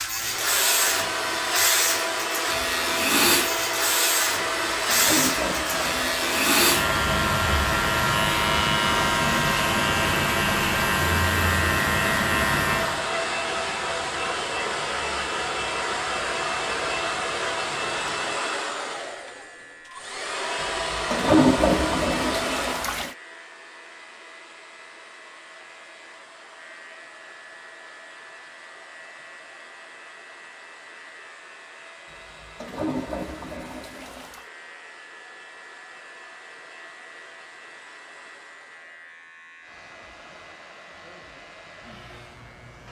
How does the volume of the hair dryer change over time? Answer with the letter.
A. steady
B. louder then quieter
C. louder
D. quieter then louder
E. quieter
E.